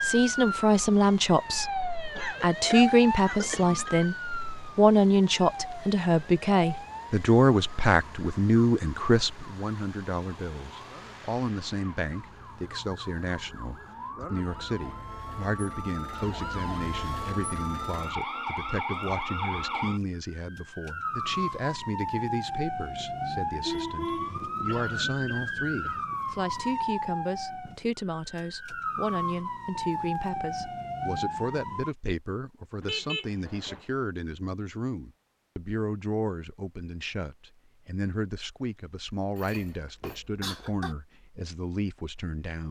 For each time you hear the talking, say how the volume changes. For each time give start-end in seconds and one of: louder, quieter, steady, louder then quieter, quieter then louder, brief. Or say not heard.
0.0-42.6 quieter.